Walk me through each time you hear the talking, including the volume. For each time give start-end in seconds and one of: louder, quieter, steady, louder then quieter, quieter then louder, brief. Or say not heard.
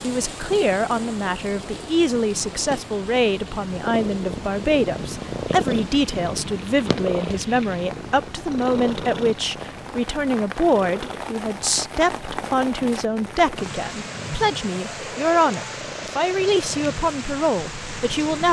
0.0-18.4 steady.